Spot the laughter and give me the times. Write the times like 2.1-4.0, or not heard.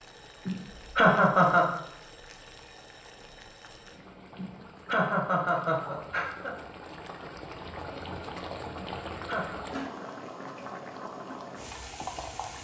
0.5-1.8, 4.3-6.5, 8.8-9.6.